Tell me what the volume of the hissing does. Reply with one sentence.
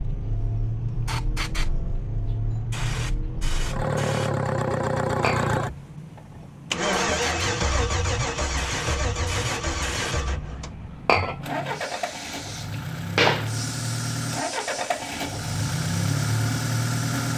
The loudness of the hissing goes up, then down.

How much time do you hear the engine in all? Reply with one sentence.
The engine can be heard for 17 seconds in total.